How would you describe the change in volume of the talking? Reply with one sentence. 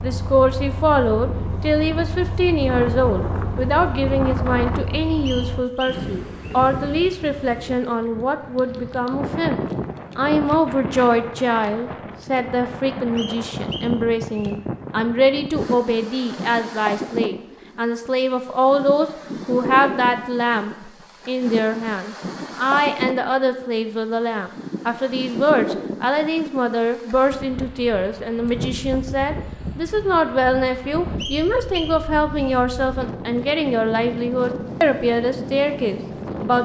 The volume of the talking stays about the same.